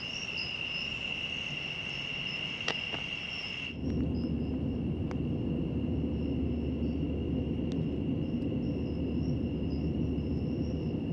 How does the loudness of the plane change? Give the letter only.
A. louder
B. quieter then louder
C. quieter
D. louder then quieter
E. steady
A.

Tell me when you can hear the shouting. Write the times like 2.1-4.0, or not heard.
not heard.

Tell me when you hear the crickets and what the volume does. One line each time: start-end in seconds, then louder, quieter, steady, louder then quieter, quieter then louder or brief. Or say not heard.
0.0-11.0 quieter.